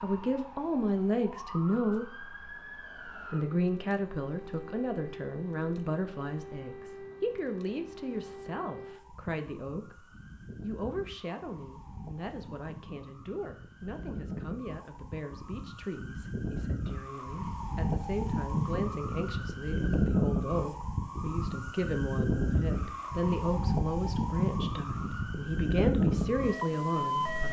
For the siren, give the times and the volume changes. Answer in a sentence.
The siren can be heard from 0.0 to 27.4 s, getting louder.